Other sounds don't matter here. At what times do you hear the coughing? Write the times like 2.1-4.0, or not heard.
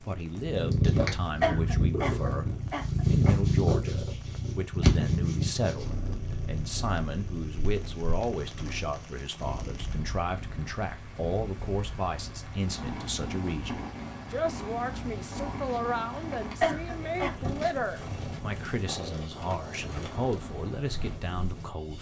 1.4-3.4, 16.6-17.5.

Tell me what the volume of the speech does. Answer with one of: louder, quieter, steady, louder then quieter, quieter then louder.
steady.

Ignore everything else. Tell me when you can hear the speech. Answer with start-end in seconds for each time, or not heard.
0.0-21.9.